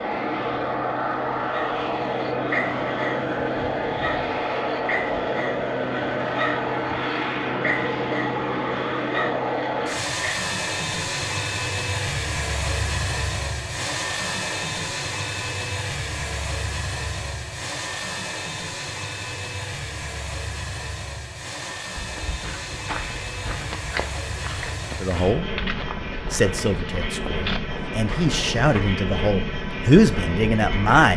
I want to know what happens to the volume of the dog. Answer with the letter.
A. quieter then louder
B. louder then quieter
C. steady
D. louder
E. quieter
C.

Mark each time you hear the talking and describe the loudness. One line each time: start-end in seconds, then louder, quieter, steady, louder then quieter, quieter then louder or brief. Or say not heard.
25.0-25.4 brief
26.3-31.1 louder.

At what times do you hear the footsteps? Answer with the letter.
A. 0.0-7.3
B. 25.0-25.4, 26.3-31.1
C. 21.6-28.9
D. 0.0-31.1
C.